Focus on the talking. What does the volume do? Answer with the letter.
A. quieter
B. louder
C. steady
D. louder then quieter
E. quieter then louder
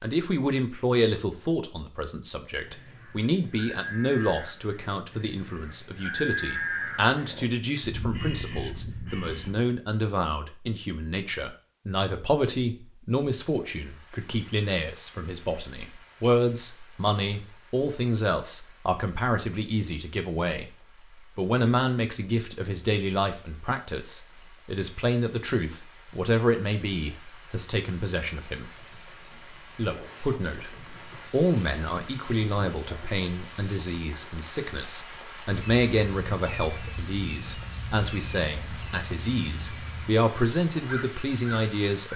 C.